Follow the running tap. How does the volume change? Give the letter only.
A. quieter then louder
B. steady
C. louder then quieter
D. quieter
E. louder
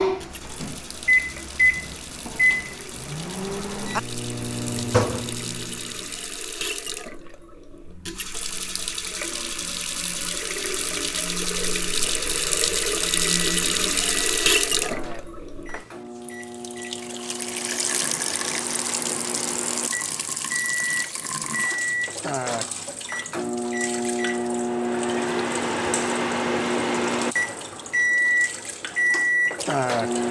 C.